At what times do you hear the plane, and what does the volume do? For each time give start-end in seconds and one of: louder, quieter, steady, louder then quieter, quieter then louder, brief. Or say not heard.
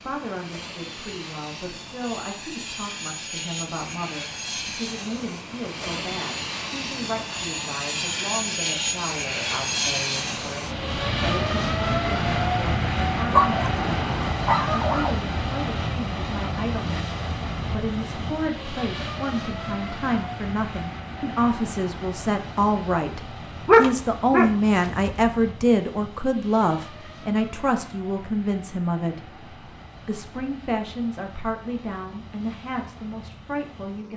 0.0-34.1 louder then quieter.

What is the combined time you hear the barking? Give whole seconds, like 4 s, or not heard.
4 s.